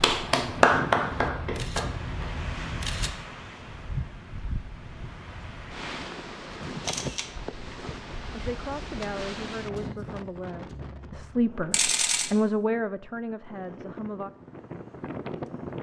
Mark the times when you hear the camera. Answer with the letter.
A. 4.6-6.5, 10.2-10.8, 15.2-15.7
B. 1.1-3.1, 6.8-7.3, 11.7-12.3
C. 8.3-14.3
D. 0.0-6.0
B.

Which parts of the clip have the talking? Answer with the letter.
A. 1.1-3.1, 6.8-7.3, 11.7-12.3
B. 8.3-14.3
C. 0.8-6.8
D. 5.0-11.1
B.